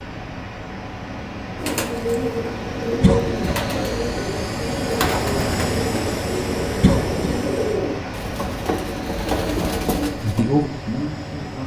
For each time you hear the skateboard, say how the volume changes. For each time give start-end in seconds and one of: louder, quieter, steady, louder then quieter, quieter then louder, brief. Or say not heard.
not heard.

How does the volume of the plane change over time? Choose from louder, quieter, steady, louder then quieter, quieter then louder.
louder then quieter.